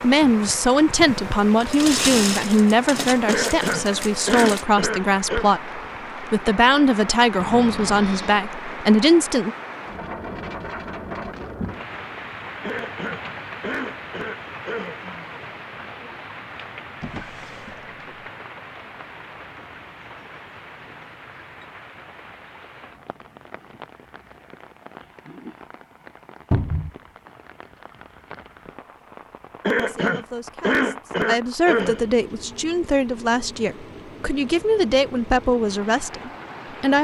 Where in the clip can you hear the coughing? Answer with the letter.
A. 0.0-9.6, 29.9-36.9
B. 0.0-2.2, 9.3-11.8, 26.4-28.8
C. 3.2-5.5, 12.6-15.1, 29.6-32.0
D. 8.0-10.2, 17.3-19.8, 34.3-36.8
C.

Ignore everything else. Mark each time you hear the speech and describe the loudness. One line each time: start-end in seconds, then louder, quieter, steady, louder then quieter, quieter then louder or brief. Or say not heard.
0.0-9.6 steady
29.9-36.9 louder.